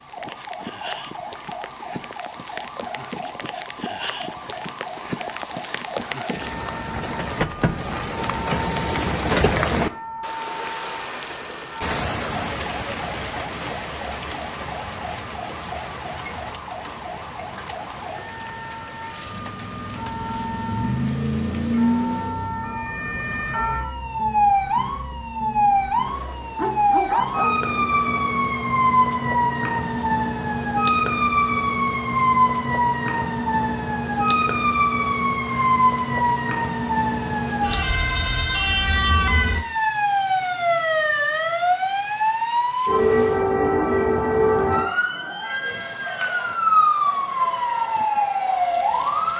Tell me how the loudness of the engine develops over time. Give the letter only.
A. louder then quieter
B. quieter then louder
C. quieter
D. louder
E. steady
A.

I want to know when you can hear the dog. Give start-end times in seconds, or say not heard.
26.6-27.9.